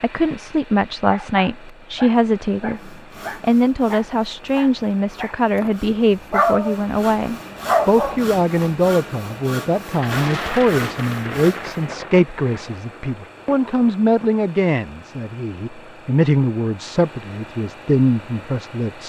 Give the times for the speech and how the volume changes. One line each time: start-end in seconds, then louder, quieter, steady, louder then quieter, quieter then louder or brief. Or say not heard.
0.0-19.0 steady.